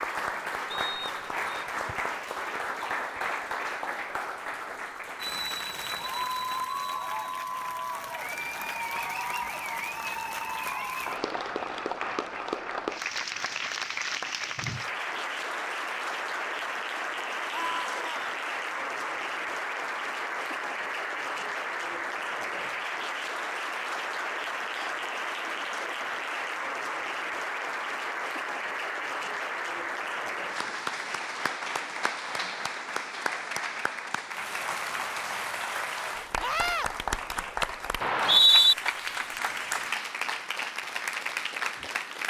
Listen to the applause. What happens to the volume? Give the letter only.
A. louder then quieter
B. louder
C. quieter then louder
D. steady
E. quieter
D.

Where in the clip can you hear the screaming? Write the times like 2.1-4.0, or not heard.
17.5-18.3, 36.4-36.9.